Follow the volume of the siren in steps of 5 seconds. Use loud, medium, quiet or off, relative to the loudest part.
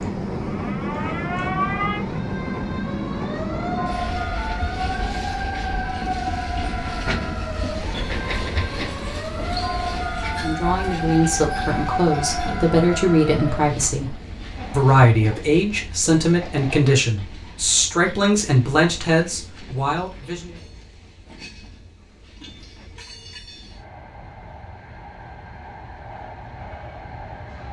loud, loud, loud, off, off, off.